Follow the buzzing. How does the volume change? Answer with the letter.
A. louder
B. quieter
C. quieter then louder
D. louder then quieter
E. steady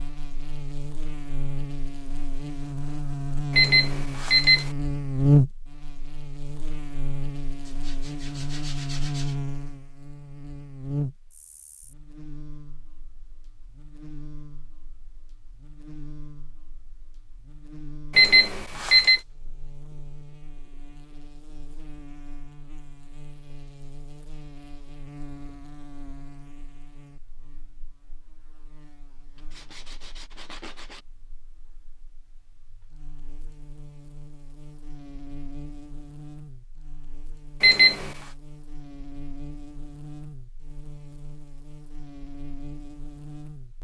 C.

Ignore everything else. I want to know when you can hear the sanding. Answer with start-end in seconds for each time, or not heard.
7.6-9.3, 29.4-31.1.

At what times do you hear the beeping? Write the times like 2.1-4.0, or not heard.
3.5-4.7, 18.1-19.2, 37.6-38.1.